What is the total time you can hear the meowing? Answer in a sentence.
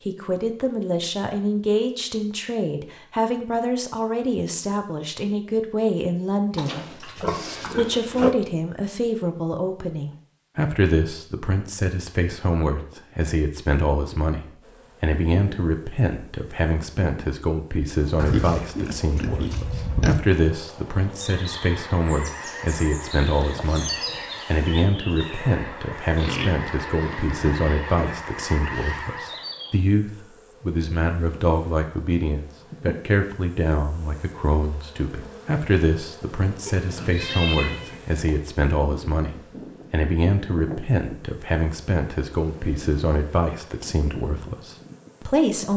The meowing can be heard for 2 seconds in total.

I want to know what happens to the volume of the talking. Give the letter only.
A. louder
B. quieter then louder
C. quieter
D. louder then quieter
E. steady
E.